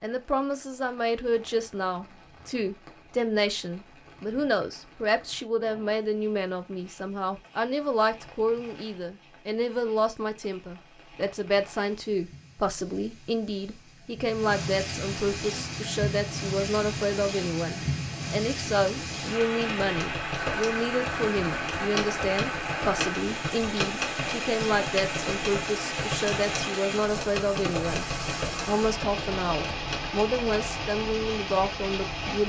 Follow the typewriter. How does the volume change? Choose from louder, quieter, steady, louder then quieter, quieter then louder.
steady.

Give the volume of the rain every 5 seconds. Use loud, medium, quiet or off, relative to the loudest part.
quiet, quiet, medium, loud, loud, loud, loud.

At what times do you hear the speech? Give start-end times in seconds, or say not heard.
0.0-28.1, 28.6-32.4.